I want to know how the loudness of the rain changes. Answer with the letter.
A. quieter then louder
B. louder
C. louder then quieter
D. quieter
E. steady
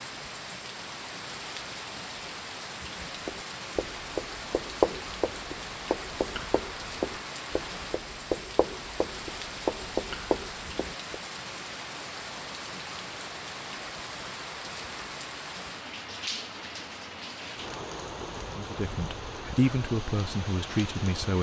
E.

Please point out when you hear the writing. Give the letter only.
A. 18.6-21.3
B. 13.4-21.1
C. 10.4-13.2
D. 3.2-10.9
D.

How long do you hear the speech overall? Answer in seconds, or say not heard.
3 s.